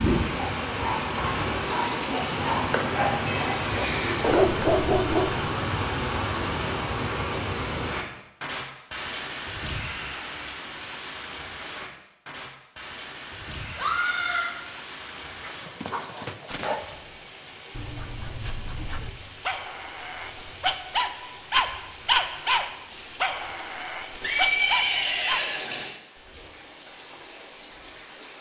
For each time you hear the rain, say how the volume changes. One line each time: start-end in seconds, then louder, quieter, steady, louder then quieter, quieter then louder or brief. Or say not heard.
0.0-28.3 quieter.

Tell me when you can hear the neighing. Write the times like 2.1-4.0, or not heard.
3.2-4.5, 13.7-14.5, 24.2-25.9.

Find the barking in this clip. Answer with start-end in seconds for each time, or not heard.
0.0-5.5, 15.4-25.4.